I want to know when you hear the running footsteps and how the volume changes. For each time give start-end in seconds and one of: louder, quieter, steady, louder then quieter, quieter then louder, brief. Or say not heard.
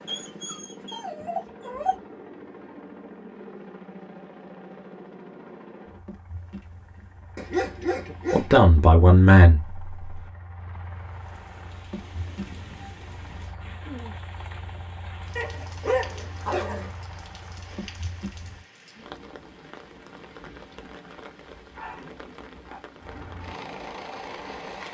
not heard.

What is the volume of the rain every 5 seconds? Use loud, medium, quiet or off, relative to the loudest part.
off, off, loud, loud, loud.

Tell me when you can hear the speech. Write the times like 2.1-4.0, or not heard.
8.3-10.2.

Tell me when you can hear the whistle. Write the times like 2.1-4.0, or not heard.
not heard.